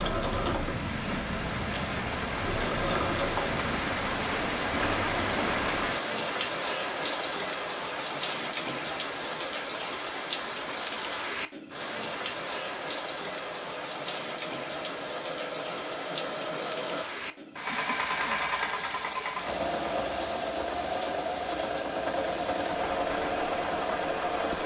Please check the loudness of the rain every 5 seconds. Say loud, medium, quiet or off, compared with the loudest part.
loud, loud, loud, medium, medium.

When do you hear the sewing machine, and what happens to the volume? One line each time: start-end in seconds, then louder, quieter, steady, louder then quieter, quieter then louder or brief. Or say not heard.
0.0-24.6 quieter then louder.